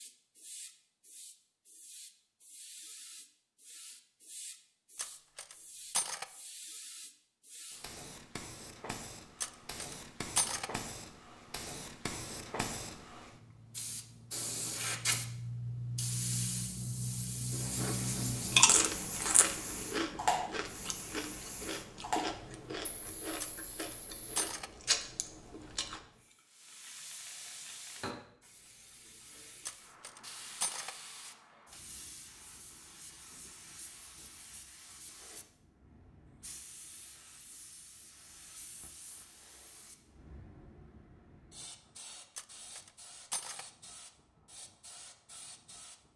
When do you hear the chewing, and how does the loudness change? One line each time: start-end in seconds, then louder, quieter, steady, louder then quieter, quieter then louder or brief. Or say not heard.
18.3-26.0 quieter then louder.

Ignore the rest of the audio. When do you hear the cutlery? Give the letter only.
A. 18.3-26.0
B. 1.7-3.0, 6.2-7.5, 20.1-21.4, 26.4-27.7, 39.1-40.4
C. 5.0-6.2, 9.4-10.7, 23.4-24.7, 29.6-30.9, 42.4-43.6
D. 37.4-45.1
C.